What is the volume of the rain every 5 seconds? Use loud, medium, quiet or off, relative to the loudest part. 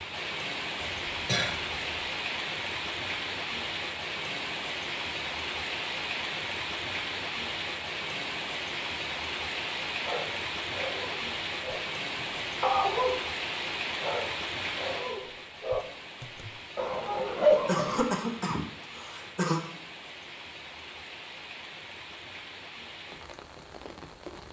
loud, loud, loud, medium, medium.